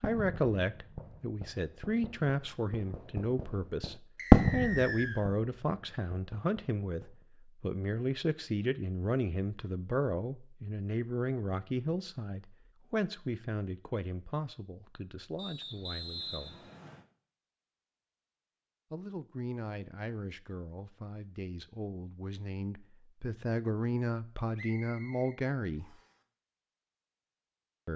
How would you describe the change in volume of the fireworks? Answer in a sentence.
The volume of the fireworks goes up, then down.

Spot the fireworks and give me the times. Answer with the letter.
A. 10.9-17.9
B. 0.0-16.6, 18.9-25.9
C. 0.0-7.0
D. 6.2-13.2
C.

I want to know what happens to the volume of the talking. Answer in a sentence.
The loudness of the talking goes down, then up.